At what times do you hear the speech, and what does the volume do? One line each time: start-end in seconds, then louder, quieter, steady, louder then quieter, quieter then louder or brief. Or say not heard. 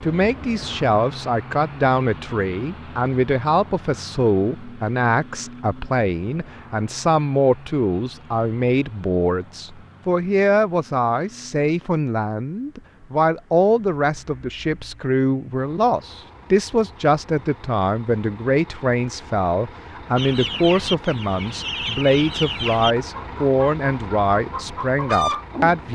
0.0-25.9 steady.